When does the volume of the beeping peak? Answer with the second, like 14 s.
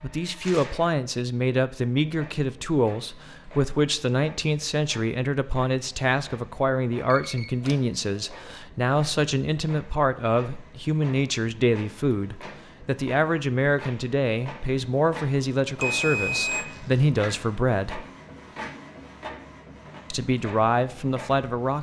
16 s.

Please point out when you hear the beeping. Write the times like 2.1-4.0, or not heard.
7.1-8.6, 15.8-16.6.